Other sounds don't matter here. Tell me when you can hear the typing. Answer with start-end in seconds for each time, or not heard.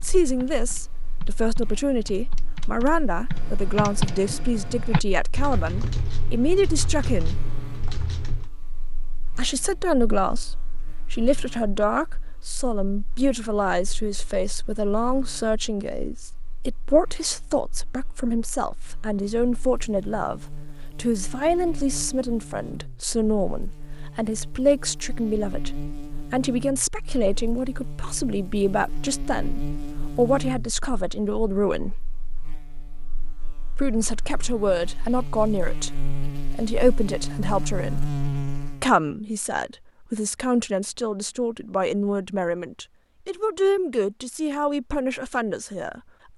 0.0-8.5.